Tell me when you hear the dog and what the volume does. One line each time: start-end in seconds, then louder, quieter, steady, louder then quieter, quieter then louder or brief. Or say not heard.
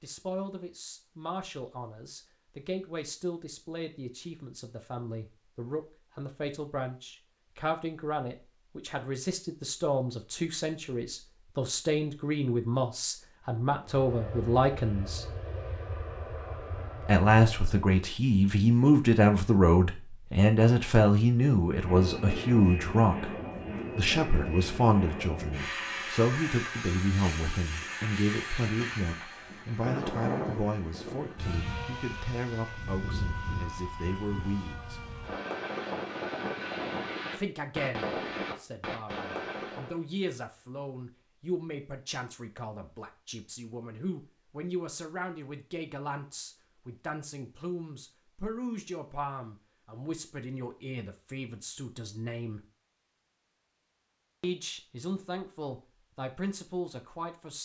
not heard.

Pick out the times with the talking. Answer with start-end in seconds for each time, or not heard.
0.0-15.2, 17.1-23.3, 23.9-35.0, 37.4-52.6, 54.4-57.5.